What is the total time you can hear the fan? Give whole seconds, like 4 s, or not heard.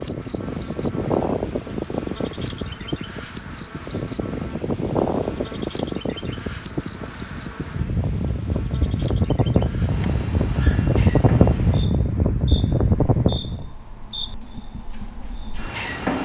14 s.